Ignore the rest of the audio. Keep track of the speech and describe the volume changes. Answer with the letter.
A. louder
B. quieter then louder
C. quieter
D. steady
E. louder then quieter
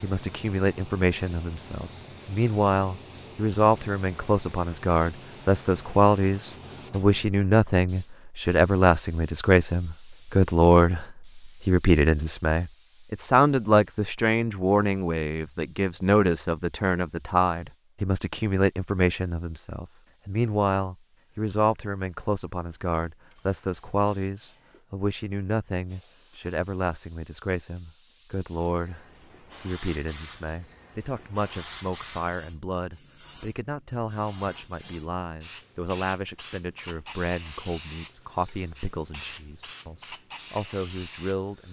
C.